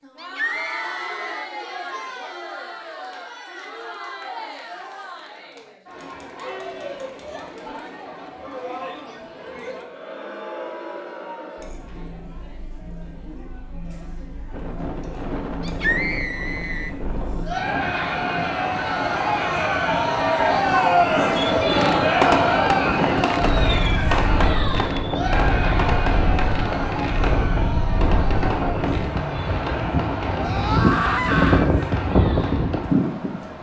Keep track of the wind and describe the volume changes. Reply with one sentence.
The loudness of the wind goes up.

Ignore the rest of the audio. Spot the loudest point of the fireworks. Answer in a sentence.
The loudest moment of the fireworks is at 22 seconds.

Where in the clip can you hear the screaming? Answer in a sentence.
You can hear the screaming from 0.1 to 1.4 s, from 15.6 to 16.9 s and from 30.4 to 31.7 s.